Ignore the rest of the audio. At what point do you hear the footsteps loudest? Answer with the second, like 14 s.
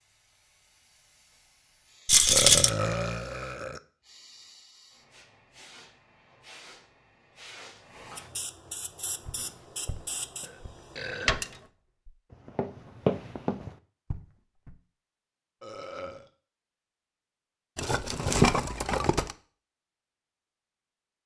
13 s.